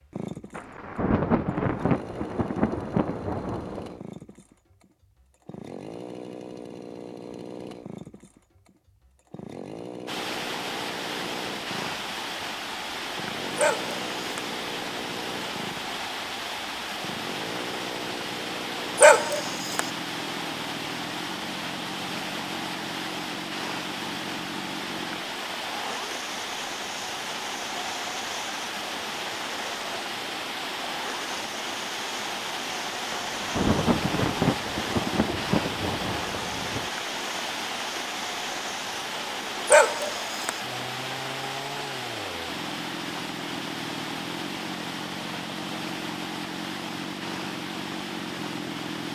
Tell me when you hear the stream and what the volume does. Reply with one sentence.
The stream can be heard from 10.1 to 49.0 s, at a steady volume.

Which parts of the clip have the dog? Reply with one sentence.
The dog can be heard from 13.6 to 14.4 s, from 18.9 to 19.8 s and from 39.6 to 40.5 s.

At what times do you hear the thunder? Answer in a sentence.
The thunder can be heard from 0.6 to 4.0 s and from 33.1 to 36.9 s.